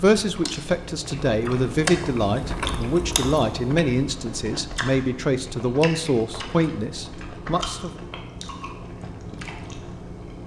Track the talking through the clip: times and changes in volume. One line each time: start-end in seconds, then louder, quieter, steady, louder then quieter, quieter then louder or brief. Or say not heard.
0.0-8.1 steady.